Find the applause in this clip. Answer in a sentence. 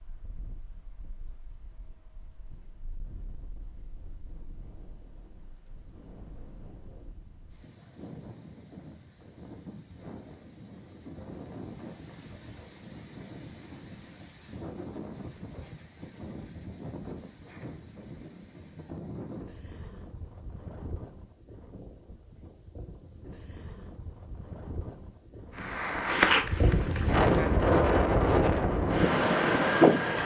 You can hear the applause from 25.6 to 27.8 s.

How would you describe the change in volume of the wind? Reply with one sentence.
The loudness of the wind goes up.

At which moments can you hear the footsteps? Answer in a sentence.
The footsteps can't be heard in this clip.